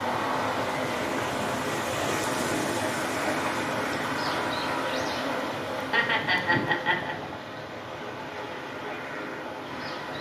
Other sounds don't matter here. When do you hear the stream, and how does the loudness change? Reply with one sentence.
You can hear the stream from 0.0 to 10.1 s, getting quieter.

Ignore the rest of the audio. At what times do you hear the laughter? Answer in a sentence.
You can hear the laughter from 5.8 to 7.2 s.